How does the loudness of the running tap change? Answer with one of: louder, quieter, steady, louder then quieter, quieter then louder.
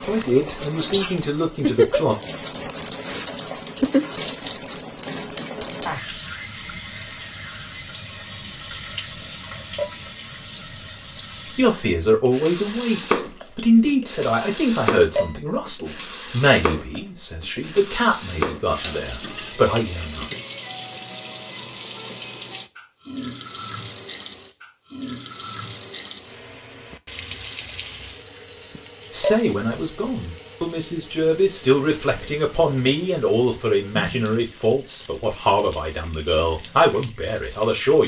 quieter.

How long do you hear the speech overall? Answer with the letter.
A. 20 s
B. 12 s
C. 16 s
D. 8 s
A.